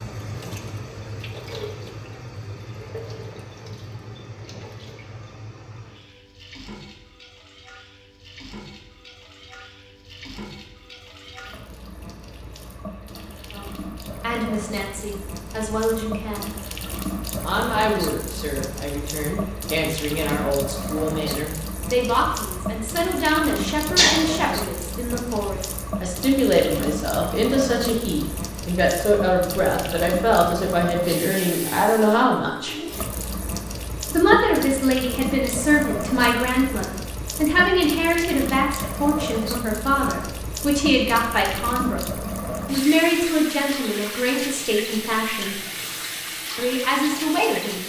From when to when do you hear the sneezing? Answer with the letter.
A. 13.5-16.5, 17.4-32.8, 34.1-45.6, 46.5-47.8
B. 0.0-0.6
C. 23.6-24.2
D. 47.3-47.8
C.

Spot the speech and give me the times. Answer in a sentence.
You can hear the speech from 13.5 to 16.5 s, from 17.4 to 32.8 s, from 34.1 to 45.6 s and from 46.5 to 47.8 s.